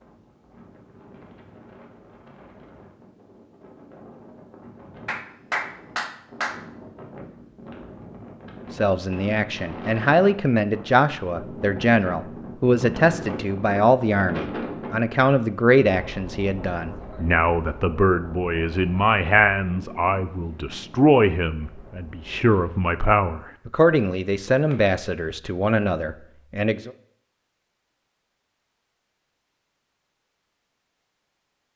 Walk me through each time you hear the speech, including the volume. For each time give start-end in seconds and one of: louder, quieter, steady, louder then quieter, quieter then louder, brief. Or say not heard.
8.7-26.9 steady.